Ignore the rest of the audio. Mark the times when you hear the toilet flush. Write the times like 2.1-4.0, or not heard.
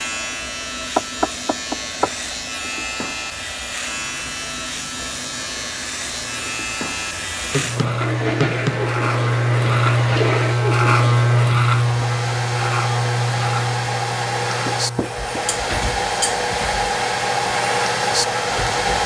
8.0-10.6.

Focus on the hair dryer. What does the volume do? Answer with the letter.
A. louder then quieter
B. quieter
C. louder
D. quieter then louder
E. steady
C.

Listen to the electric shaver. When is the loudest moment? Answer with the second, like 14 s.
11 s.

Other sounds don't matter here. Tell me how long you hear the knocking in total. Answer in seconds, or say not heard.
3 s.